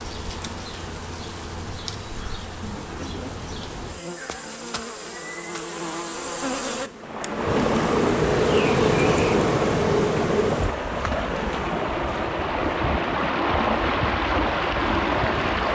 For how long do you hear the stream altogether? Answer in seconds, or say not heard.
9 s.